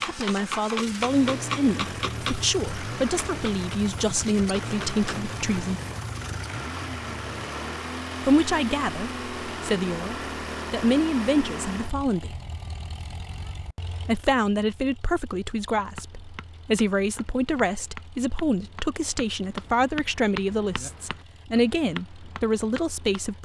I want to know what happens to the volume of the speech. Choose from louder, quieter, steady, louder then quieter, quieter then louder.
steady.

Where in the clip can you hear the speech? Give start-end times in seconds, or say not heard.
0.0-5.8, 8.2-12.4, 13.8-23.3.